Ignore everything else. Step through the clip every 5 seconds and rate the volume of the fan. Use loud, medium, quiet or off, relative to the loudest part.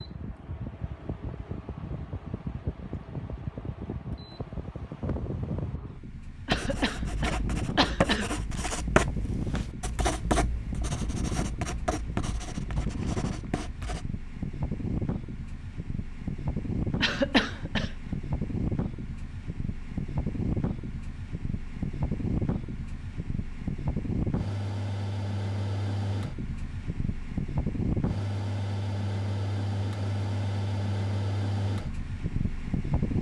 medium, loud, loud, loud, loud, loud, loud.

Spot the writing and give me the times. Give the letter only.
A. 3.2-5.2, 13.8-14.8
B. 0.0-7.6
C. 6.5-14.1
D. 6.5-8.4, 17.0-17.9
C.